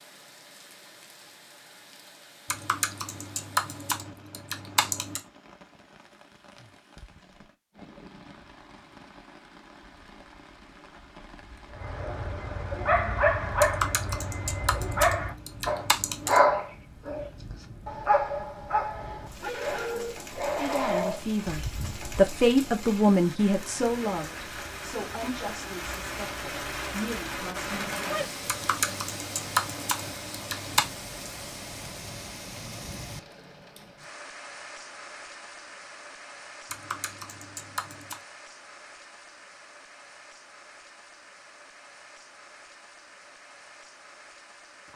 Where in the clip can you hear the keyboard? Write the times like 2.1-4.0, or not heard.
2.5-5.2, 13.6-16.4, 28.4-30.9, 36.7-38.2.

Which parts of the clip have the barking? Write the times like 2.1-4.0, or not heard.
11.8-22.2.